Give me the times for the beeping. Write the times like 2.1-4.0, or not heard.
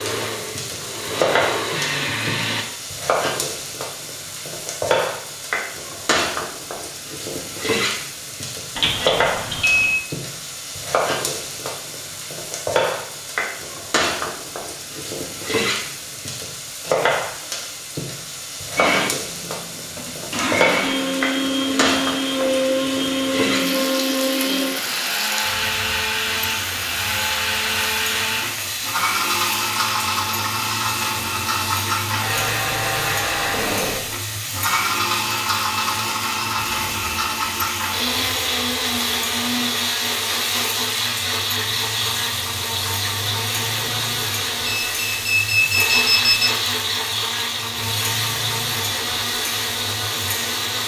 8.8-9.9, 44.6-46.5.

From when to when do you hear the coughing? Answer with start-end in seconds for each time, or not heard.
not heard.